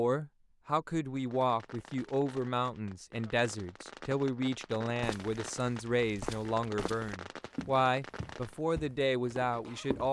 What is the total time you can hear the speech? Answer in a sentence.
The speech can be heard for 10 seconds in total.